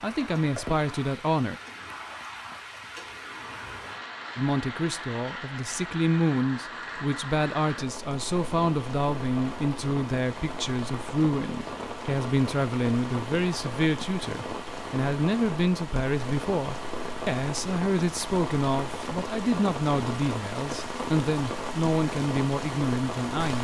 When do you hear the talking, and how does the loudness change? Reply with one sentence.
You can hear the talking briefly from 0.0 to 1.6 s; and from 4.3 to 23.5 s, at a steady volume.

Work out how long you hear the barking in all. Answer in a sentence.
You can't hear the barking here.